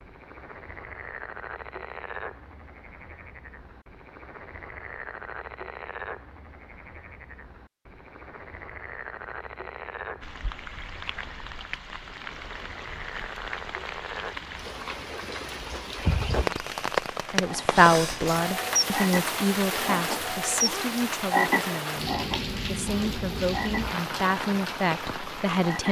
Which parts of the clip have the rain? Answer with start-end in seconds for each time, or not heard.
10.2-25.8.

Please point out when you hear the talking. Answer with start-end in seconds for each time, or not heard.
17.3-25.8.